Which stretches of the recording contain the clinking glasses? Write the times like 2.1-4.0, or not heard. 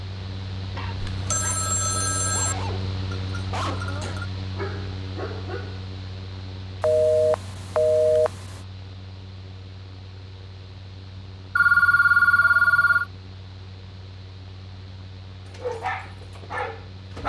not heard.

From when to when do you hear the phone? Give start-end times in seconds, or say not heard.
1.0-2.5, 6.8-8.3, 11.6-13.1.